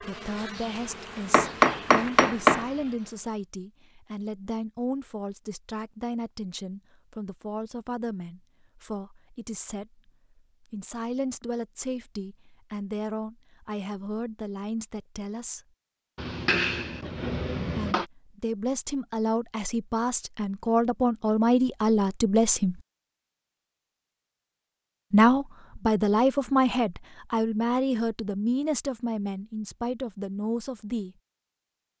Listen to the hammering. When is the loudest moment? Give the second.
2 s.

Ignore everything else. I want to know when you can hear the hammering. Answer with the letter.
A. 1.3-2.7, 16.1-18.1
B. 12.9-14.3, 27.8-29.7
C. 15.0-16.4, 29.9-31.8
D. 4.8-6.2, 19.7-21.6
A.